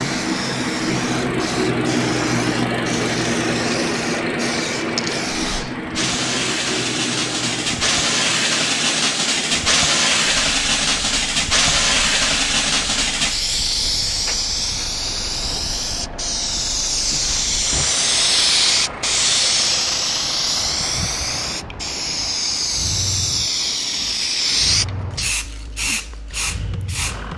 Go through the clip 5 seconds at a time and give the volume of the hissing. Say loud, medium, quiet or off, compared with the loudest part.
medium, loud, loud, loud, loud, medium.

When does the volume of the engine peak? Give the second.
2 s.